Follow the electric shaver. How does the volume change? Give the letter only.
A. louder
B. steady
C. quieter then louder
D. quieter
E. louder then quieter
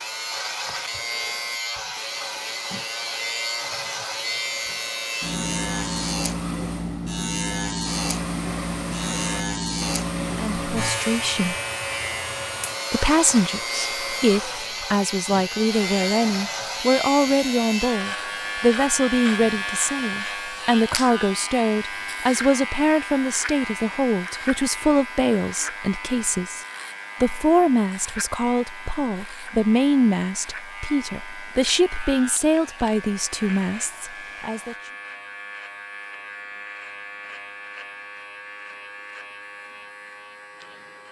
D.